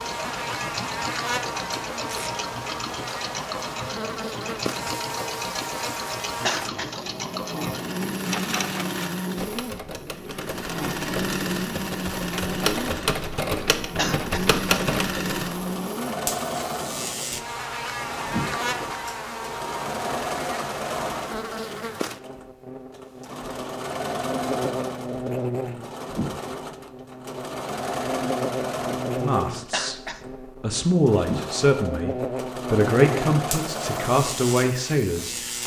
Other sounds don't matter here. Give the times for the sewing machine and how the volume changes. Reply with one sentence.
The sewing machine can be heard from 0.0 to 35.5 s, at a steady volume.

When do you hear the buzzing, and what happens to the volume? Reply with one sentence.
The buzzing can be heard from 0.0 to 35.6 s, at a steady volume.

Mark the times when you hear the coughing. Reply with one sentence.
The coughing can be heard from 6.5 to 6.9 s, from 13.9 to 14.4 s and from 29.7 to 30.2 s.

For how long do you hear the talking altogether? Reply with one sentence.
The talking can be heard for 6 seconds in total.